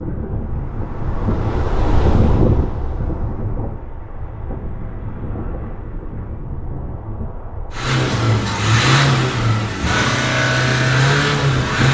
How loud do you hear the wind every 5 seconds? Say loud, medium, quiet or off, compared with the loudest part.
loud, medium, loud.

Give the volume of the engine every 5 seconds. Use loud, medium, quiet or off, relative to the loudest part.
off, loud, loud.